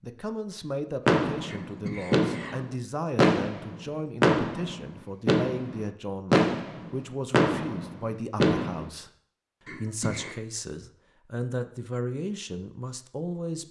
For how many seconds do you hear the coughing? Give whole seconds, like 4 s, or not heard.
2 s.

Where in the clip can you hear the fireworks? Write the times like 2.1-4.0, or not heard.
1.1-8.9.